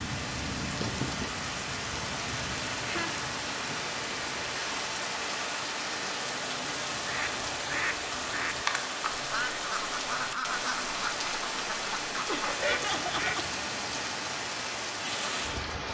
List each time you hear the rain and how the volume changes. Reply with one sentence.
The rain can be heard from 0.0 to 15.8 s, at a steady volume.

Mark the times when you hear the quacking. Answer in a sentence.
You can hear the quacking from 7.0 to 13.4 s.